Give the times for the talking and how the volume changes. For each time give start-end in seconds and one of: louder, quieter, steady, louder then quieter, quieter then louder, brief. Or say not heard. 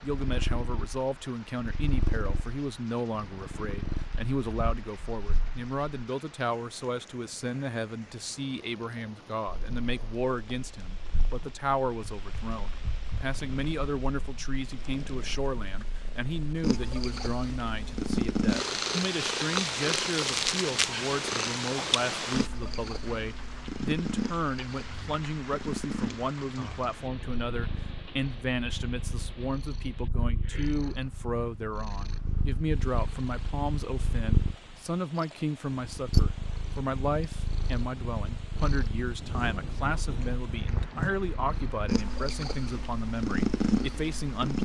0.0-44.5 steady.